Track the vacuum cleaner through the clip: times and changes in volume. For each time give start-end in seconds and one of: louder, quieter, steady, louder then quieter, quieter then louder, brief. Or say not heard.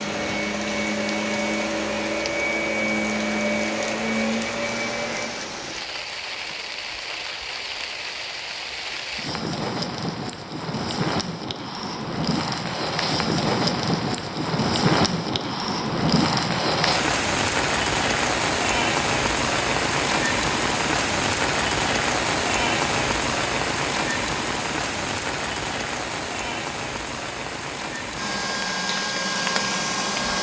0.0-5.3 steady
28.1-30.3 brief.